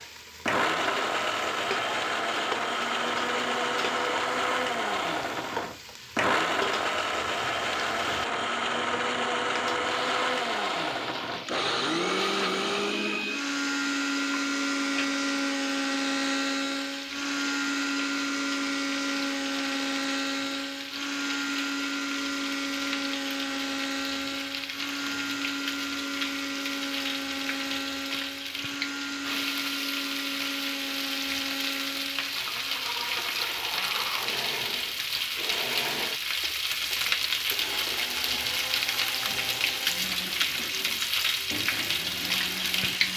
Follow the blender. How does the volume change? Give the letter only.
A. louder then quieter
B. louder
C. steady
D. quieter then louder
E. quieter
E.